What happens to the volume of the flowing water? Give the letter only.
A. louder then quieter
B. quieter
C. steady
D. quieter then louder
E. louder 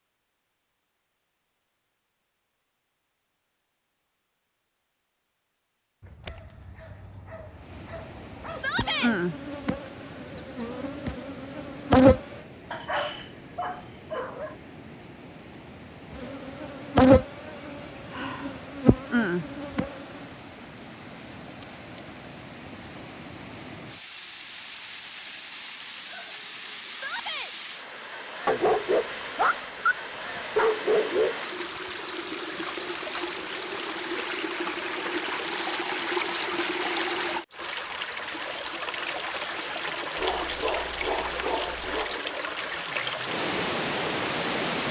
E.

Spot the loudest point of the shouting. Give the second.
9 s.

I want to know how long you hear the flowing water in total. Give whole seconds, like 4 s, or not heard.
37 s.